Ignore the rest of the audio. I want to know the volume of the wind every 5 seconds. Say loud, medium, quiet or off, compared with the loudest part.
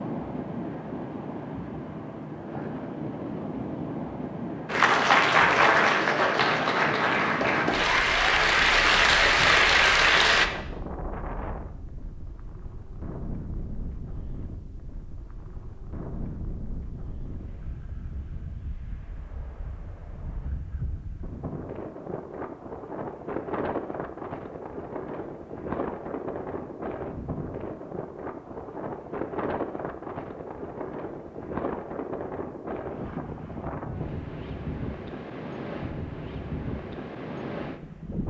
loud, loud, medium, medium, loud, loud, loud, loud.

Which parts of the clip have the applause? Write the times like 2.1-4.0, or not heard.
4.7-10.4.